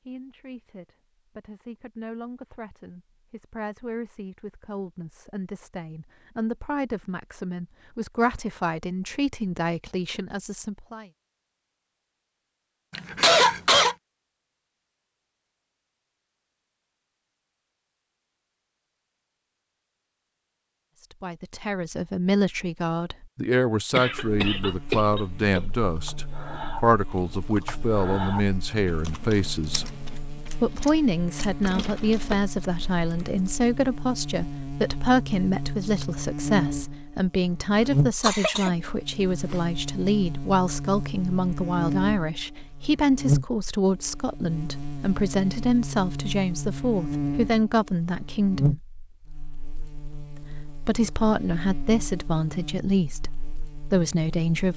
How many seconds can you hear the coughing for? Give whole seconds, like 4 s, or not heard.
3 s.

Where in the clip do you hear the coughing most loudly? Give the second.
13 s.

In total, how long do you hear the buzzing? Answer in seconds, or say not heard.
31 s.